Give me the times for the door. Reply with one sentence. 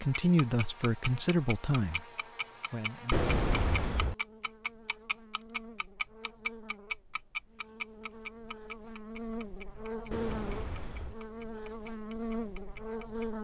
You can hear the door from 3.1 to 4.2 s and from 10.1 to 11.2 s.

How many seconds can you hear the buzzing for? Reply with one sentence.
You can hear the buzzing for 13 seconds altogether.